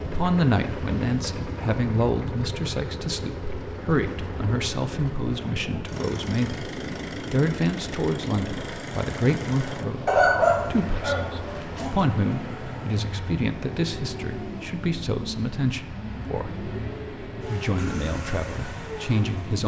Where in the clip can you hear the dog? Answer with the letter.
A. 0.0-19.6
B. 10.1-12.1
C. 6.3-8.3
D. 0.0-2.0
B.